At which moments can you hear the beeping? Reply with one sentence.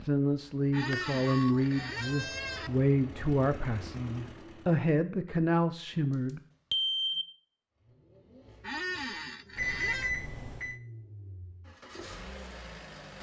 You can hear the beeping from 0.9 to 2.8 s, from 6.7 to 7.2 s and from 9.6 to 10.8 s.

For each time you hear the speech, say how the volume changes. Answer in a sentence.
You can hear the speech from 0.0 to 6.4 s, at a steady volume.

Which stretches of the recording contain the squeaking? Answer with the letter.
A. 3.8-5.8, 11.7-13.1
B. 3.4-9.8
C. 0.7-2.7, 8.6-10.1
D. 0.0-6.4
C.